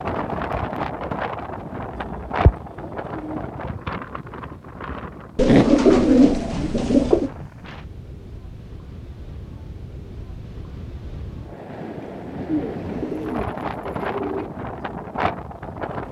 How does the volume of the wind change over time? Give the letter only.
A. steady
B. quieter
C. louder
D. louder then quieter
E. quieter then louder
E.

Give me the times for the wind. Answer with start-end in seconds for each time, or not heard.
0.0-16.0.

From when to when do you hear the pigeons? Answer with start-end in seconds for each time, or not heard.
1.9-3.4, 5.3-7.3, 12.4-14.5.